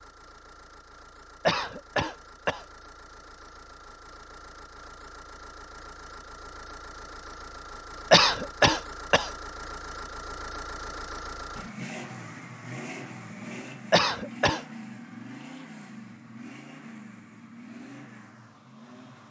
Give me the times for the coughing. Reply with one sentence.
You can hear the coughing from 1.4 to 2.6 s, from 8.1 to 9.3 s and from 13.9 to 14.6 s.